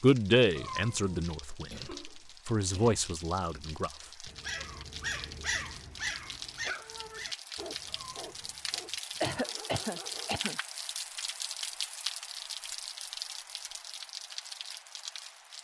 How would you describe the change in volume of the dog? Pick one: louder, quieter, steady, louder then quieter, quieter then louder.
quieter.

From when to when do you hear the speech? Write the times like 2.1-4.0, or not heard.
0.0-3.9.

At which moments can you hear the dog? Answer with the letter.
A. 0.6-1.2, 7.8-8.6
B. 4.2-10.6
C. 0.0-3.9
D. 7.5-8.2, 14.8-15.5
B.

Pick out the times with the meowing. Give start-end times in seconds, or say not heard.
0.6-1.2, 7.8-8.6.